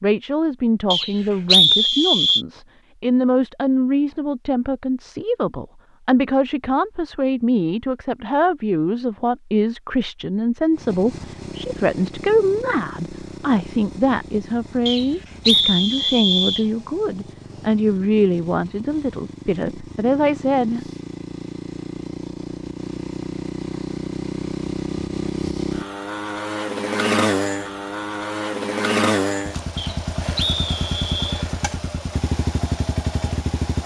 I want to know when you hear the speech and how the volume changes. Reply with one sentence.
You can hear the speech from 0.0 to 20.9 s, at a steady volume.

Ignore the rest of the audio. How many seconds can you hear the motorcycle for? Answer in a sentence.
The motorcycle can be heard for 23 seconds in total.